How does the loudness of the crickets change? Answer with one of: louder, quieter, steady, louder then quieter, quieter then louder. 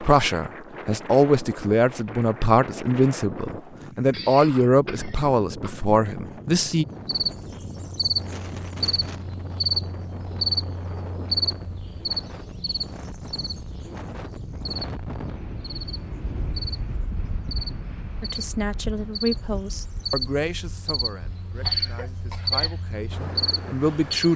quieter then louder.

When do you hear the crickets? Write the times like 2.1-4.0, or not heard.
6.9-24.3.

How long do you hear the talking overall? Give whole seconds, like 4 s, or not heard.
13 s.